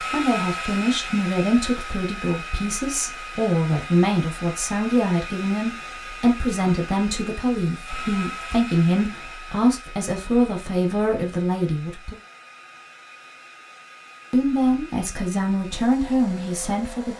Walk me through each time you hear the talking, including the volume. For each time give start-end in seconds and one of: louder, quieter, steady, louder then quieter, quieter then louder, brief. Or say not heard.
0.1-12.2 steady
14.3-17.1 brief.